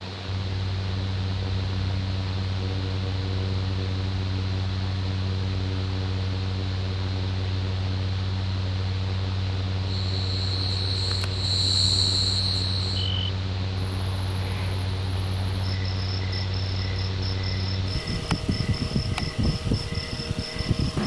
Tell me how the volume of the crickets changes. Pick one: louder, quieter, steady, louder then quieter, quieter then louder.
quieter.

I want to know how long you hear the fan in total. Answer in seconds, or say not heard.
21 s.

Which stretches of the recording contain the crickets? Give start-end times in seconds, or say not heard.
9.8-21.0.